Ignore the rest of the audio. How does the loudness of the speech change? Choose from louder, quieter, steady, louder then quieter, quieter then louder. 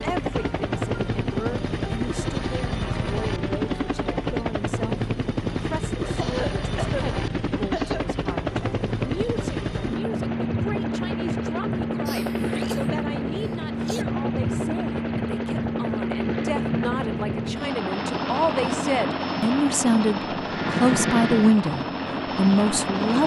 louder.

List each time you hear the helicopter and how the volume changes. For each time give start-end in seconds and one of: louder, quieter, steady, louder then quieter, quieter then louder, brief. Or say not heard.
0.0-23.2 steady.